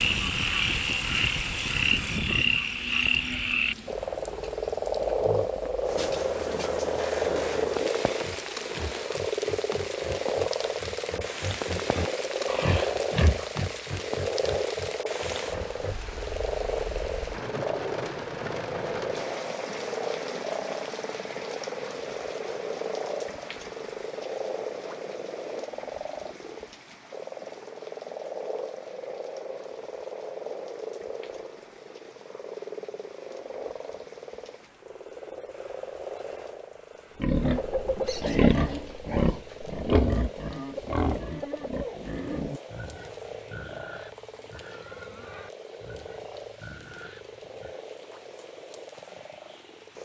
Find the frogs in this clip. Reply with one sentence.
The frogs can be heard from 0.0 to 50.0 s.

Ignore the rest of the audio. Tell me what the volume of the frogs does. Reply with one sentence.
The volume of the frogs goes down.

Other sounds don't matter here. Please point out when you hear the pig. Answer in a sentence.
The pig can be heard from 5.2 to 16.1 s and from 37.2 to 47.8 s.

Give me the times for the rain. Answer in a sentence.
You can hear the rain from 0.0 to 50.0 s.